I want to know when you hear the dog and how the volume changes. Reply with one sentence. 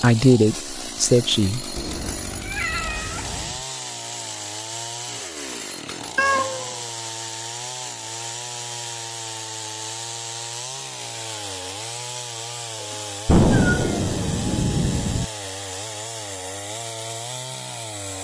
You can't hear the dog here.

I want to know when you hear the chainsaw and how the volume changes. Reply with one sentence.
The chainsaw can be heard from 0.0 to 18.2 s, at a steady volume.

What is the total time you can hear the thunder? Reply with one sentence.
The thunder can be heard for 2 seconds in total.